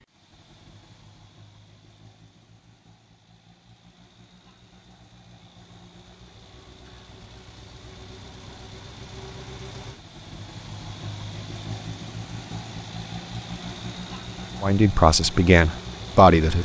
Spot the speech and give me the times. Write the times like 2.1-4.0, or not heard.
14.6-16.6.